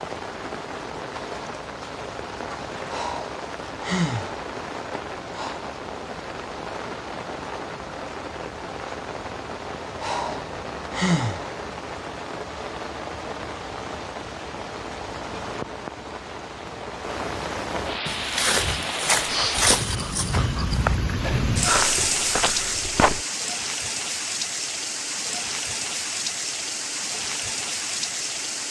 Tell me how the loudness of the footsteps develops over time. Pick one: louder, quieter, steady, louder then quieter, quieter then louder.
quieter.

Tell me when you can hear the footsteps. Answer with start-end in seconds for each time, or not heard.
18.1-23.2.